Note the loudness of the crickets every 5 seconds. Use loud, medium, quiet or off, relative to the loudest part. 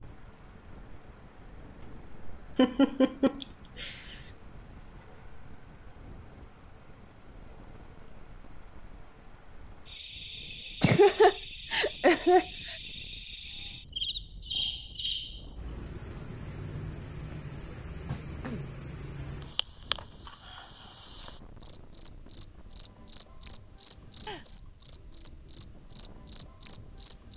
medium, medium, loud, loud, loud, loud.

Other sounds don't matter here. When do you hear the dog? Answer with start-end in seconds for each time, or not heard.
not heard.